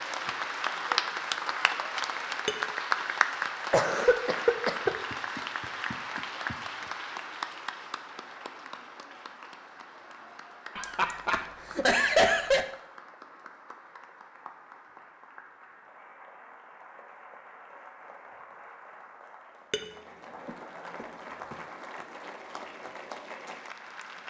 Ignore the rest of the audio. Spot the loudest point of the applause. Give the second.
3 s.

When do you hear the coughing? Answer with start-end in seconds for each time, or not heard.
3.7-4.9, 10.8-12.7, 20.4-22.0.